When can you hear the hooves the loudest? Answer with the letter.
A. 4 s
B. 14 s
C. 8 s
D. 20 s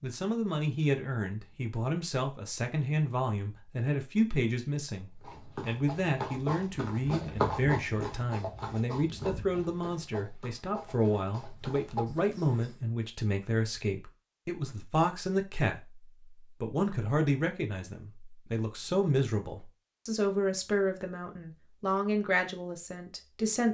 C.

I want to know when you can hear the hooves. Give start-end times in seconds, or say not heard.
5.2-12.7.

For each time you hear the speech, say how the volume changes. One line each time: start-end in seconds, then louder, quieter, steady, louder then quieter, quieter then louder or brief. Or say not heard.
0.0-23.6 steady.